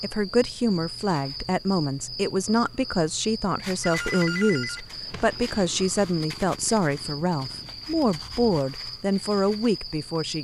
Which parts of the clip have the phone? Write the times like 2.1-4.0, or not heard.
3.8-5.6.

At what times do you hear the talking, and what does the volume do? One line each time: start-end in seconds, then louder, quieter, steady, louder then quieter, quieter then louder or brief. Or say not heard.
0.0-10.3 steady.